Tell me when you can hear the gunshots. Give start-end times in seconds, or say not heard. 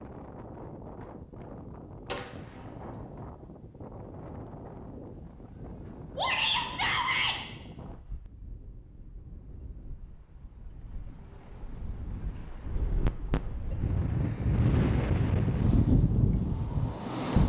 2.0-3.1.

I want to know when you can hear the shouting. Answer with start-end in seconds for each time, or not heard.
6.2-7.3.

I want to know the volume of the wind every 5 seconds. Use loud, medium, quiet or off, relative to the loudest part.
quiet, quiet, medium, loud.